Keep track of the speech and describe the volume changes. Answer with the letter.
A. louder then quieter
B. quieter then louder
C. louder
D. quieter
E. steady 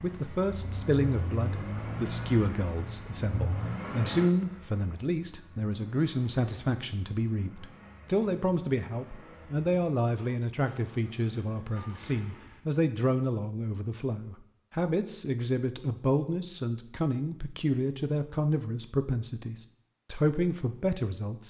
E.